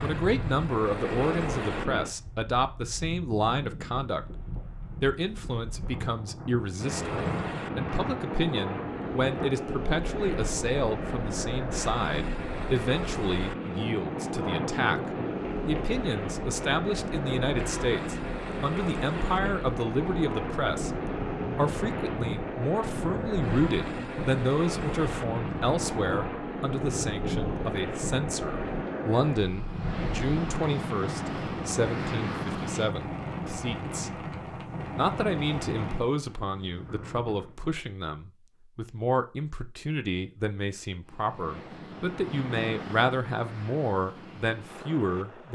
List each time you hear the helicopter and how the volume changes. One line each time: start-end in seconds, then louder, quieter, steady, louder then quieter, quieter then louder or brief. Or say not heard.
0.0-2.1 brief
6.8-33.0 steady
41.0-45.4 louder then quieter.